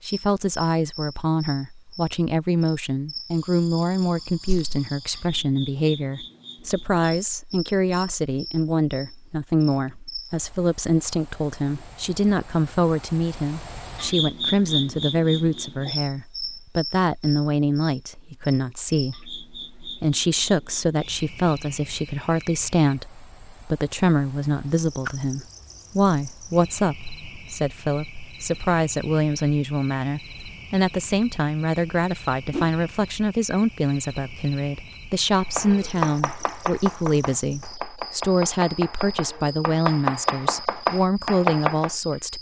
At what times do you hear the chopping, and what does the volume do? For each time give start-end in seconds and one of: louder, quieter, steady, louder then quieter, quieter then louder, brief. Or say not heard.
35.5-42.0 quieter then louder.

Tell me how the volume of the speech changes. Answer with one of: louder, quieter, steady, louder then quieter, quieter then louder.
steady.